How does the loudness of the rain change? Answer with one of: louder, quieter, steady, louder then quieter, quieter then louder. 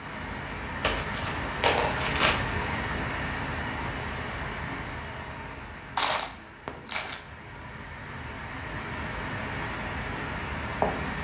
quieter then louder.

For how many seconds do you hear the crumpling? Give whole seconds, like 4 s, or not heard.
3 s.